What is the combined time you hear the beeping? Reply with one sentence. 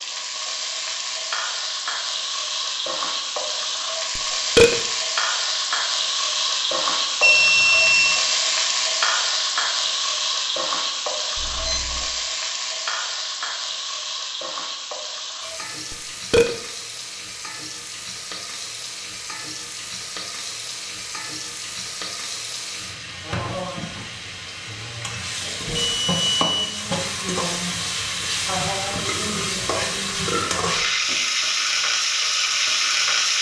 The beeping can be heard for 3 seconds in total.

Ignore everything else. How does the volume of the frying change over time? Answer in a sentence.
The loudness of the frying goes down, then up.